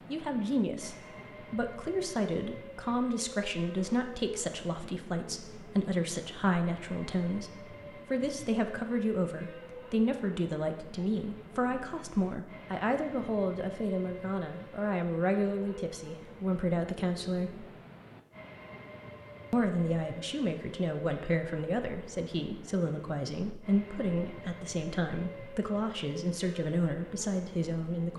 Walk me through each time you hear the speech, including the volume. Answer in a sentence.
You can hear the speech from 0.1 to 17.6 s, at a steady volume; and from 19.5 to 28.1 s, at a steady volume.